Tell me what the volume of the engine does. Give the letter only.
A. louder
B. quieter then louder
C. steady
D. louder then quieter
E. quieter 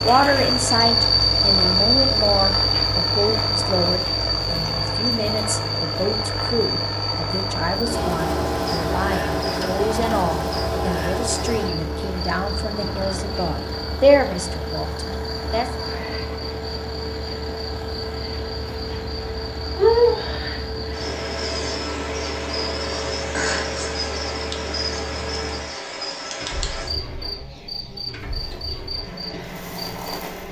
E.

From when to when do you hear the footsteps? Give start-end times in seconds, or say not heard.
not heard.